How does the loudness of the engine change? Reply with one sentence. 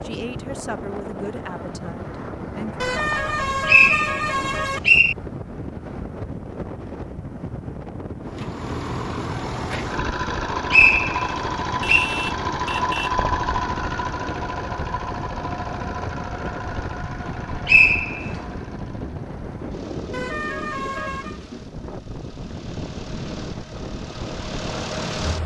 The loudness of the engine goes down, then up.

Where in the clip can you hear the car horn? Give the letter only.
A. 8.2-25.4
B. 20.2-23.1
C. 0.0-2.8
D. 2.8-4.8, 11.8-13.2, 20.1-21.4
D.